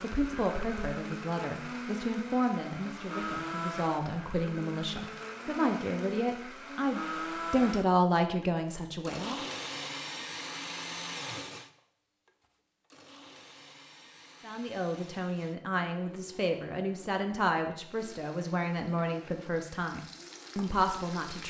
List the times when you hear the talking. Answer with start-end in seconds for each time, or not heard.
0.0-9.4, 14.4-21.4.